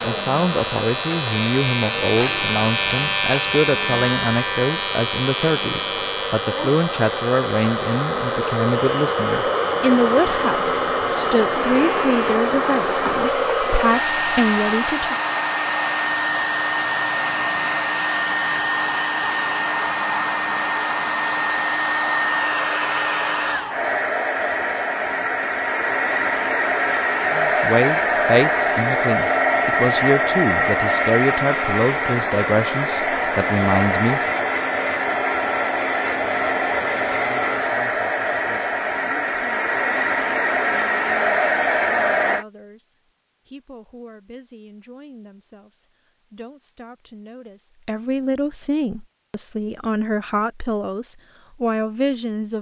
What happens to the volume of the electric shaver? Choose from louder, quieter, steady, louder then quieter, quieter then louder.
quieter.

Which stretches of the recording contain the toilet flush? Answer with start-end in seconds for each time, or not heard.
not heard.